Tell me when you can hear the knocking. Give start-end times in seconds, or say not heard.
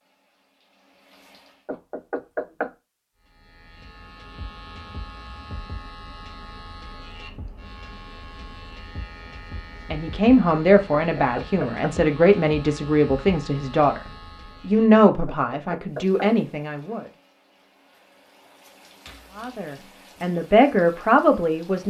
1.6-2.7, 10.9-11.9, 15.2-16.3.